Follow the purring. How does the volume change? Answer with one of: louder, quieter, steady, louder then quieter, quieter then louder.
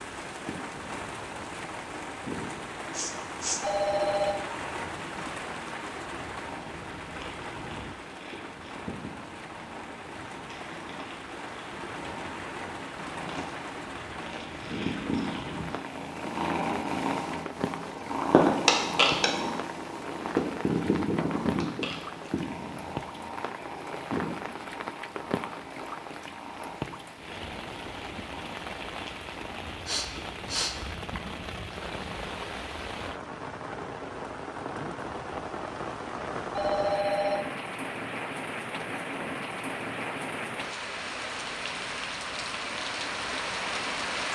louder then quieter.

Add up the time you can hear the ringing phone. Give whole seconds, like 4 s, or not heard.
2 s.